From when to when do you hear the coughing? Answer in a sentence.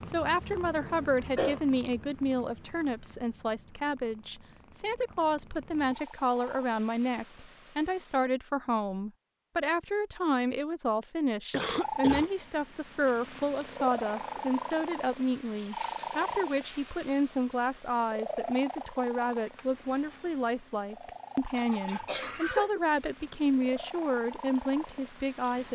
You can hear the coughing from 0.7 to 1.6 s, from 11.5 to 12.3 s and from 21.6 to 22.7 s.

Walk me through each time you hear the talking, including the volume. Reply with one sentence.
You can hear the talking from 0.0 to 25.7 s, at a steady volume.